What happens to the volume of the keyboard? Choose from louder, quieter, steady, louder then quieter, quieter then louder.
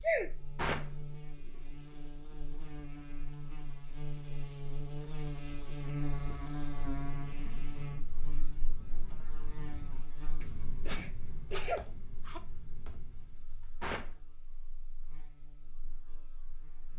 louder then quieter.